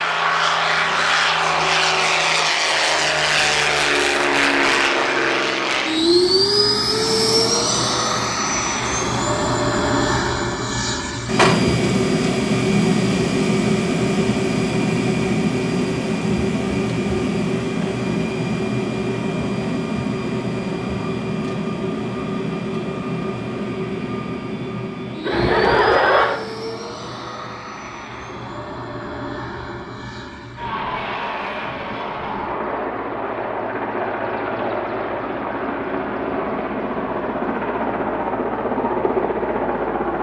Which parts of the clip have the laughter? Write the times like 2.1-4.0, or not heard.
25.2-26.4.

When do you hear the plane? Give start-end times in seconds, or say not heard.
0.0-40.1.